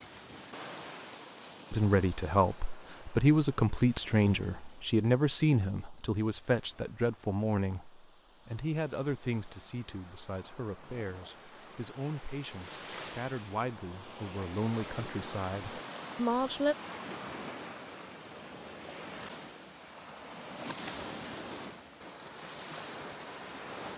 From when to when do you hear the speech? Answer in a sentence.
You can hear the speech from 1.7 to 16.8 s.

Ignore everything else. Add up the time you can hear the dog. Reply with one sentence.
You can't hear the dog here.